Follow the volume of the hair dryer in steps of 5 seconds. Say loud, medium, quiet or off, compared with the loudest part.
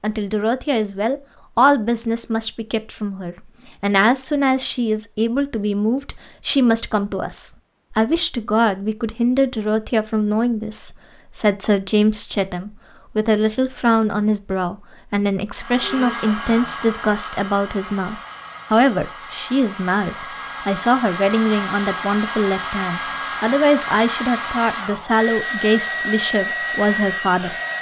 off, off, off, medium, loud, loud.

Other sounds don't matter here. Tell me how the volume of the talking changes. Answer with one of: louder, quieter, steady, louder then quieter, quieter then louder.
steady.